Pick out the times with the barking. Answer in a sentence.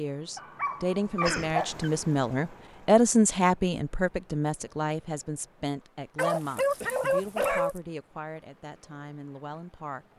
The barking can be heard from 0.3 to 1.9 s and from 6.2 to 7.8 s.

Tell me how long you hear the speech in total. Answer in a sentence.
You can hear the speech for 10 seconds altogether.